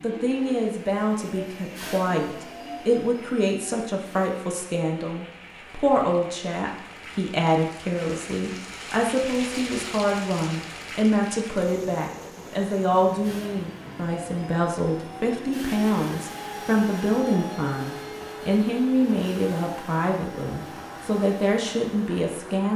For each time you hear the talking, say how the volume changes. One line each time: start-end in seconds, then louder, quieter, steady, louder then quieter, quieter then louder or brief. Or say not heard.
0.0-22.7 steady.